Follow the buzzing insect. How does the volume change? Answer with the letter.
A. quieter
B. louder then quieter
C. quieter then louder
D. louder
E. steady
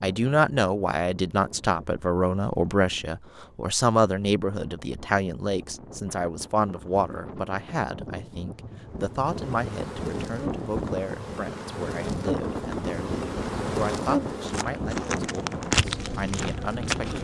D.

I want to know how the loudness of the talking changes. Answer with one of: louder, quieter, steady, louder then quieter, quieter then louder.
quieter.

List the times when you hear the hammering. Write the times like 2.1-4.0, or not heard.
not heard.